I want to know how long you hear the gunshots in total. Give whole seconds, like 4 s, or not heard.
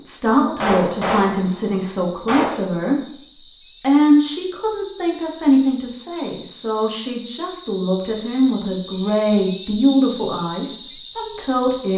2 s.